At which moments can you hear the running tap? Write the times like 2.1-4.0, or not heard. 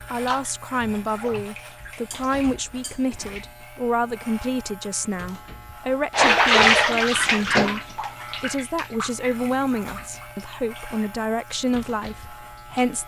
0.1-3.5, 6.1-12.9.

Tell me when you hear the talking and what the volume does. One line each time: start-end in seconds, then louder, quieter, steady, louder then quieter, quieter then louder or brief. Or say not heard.
0.1-13.0 steady.